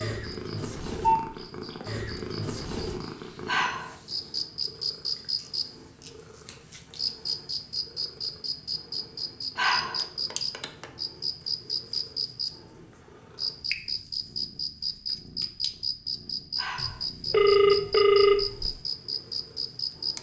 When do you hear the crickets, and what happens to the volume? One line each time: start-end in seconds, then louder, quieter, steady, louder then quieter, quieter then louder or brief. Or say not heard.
0.1-20.1 louder.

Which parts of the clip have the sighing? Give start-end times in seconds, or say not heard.
3.5-4.0, 9.6-10.1, 16.6-17.1.